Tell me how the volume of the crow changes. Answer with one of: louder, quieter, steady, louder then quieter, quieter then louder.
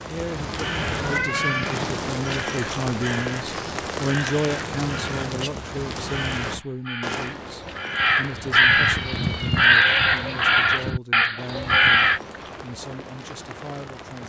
louder.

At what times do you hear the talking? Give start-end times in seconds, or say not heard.
0.1-14.2.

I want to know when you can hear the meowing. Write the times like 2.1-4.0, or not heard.
0.8-2.0, 8.6-9.8.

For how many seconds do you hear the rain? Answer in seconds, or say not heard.
14 s.